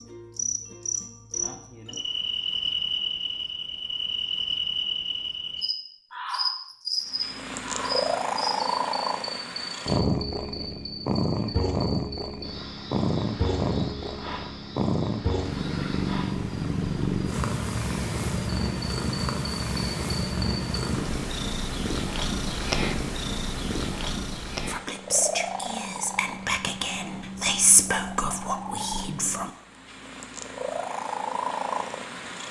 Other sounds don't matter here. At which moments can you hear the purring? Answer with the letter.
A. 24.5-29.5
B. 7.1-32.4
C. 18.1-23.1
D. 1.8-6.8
B.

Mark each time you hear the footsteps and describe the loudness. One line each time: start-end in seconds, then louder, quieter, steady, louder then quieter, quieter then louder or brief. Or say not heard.
not heard.